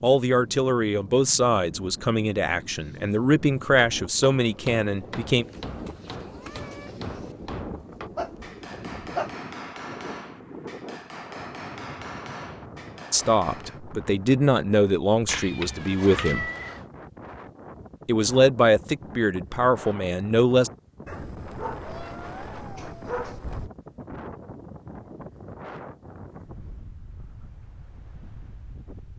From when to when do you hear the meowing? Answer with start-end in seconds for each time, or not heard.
5.3-7.3, 15.2-16.8, 21.8-23.4.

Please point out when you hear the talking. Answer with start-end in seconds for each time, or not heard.
0.0-5.5, 13.1-16.5, 18.1-20.7.